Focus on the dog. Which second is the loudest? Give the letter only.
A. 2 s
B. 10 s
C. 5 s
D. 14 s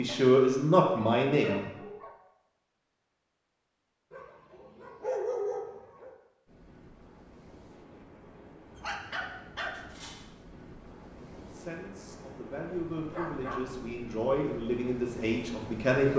C.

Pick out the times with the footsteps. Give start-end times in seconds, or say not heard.
not heard.